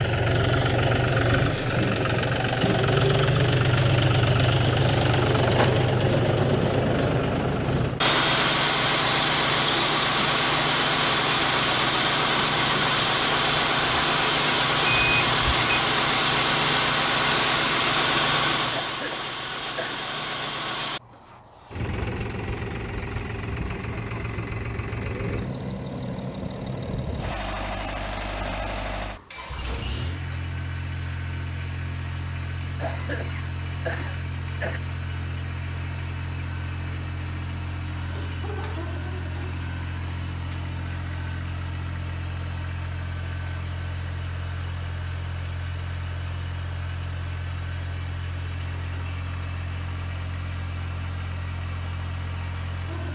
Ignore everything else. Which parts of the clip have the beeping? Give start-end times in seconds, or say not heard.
14.8-15.8.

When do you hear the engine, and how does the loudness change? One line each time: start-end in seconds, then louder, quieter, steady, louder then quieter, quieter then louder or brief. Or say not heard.
0.0-53.1 quieter.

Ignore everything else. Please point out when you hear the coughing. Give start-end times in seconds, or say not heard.
18.7-20.1, 32.8-34.8.